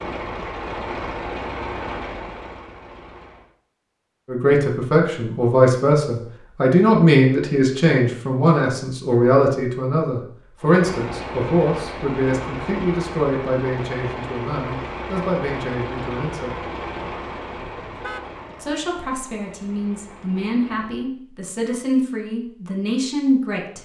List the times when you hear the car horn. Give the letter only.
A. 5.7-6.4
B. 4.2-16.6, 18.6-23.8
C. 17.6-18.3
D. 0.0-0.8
C.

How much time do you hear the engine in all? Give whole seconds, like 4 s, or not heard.
14 s.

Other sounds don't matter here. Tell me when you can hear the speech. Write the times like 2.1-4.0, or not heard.
4.2-16.6, 18.6-23.8.